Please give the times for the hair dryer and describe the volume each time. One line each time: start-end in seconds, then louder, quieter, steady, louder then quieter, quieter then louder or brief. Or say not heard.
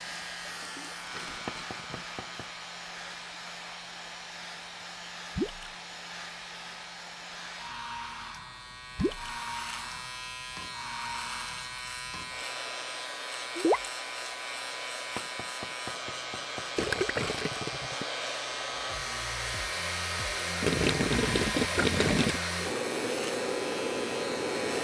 0.0-24.7 louder.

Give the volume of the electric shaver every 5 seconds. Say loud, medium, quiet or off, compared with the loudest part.
medium, medium, loud, loud, loud.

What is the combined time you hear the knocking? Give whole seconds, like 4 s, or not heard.
3 s.